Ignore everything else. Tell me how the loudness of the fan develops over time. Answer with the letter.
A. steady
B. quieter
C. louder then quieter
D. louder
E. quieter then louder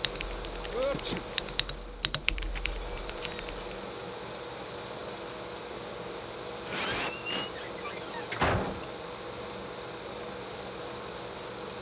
A.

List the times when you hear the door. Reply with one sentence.
The door can be heard from 2.5 to 3.5 s and from 6.7 to 8.8 s.